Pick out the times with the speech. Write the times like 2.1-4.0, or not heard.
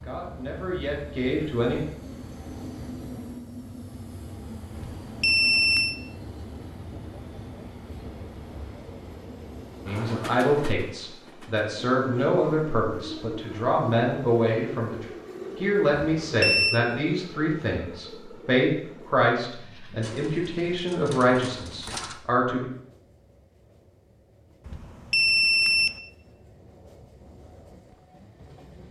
0.0-1.8, 9.8-22.6.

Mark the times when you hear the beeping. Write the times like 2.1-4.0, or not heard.
4.8-6.0, 16.2-16.8, 24.6-25.9.